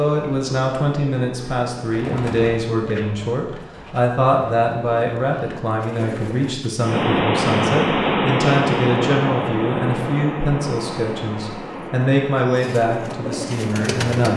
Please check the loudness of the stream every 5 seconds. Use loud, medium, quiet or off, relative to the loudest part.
off, loud, medium.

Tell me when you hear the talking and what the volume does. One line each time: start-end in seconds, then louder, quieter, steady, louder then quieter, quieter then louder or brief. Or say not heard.
0.0-14.3 steady.